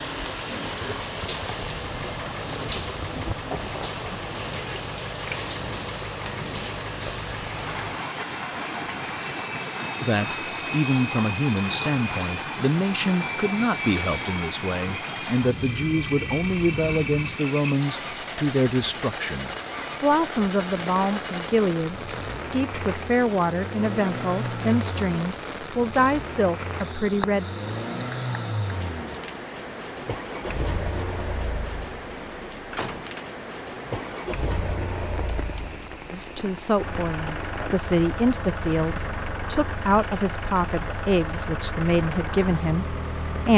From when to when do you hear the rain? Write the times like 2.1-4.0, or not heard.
0.0-43.4.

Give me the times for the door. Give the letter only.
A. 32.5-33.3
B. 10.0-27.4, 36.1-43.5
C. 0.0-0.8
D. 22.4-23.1
A.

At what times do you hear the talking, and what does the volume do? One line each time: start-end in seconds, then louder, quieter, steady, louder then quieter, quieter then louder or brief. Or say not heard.
10.0-27.4 steady
36.1-43.5 steady.